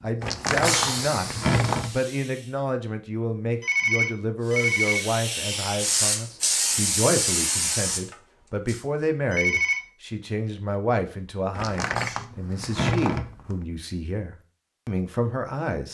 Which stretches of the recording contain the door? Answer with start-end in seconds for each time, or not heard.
0.2-1.9, 11.6-13.6.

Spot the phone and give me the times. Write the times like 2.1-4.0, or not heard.
3.6-5.0, 9.3-9.8.